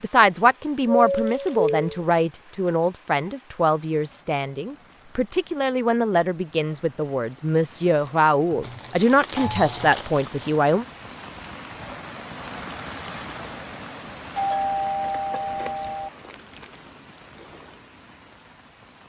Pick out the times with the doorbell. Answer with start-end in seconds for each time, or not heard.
0.8-2.0, 8.5-9.9, 14.3-16.1.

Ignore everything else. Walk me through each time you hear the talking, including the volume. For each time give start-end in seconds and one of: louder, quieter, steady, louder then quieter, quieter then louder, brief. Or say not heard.
0.0-10.8 steady.